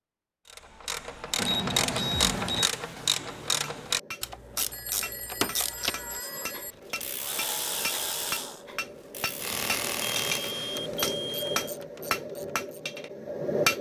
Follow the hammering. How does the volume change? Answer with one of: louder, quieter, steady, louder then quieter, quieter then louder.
louder.